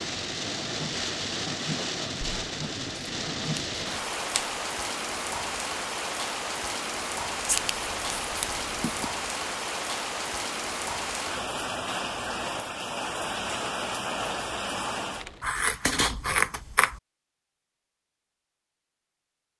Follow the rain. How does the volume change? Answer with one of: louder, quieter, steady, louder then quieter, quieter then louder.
steady.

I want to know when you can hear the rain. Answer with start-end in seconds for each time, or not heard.
0.0-15.5.